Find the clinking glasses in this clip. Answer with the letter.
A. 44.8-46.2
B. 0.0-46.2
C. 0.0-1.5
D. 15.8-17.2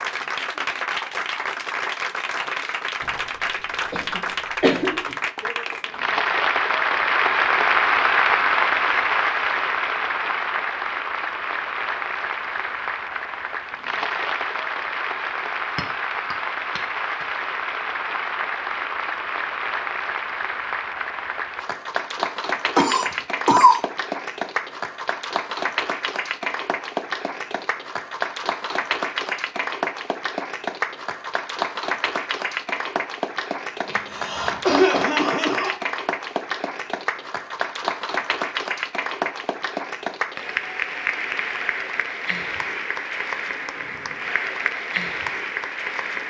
D.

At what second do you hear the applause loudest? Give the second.
8 s.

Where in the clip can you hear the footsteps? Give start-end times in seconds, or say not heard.
not heard.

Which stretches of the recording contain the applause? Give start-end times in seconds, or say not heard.
0.0-46.2.